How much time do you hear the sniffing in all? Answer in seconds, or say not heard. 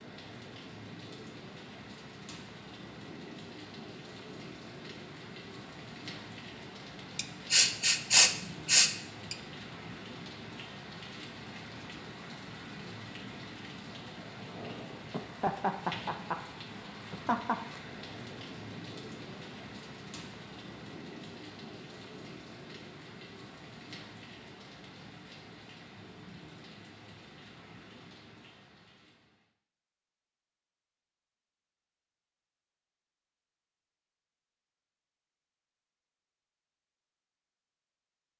2 s.